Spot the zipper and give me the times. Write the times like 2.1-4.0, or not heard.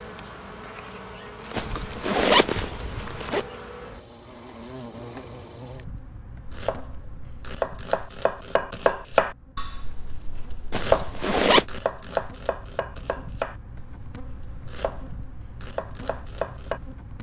1.5-3.5, 10.7-11.7.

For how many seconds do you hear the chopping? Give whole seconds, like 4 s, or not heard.
10 s.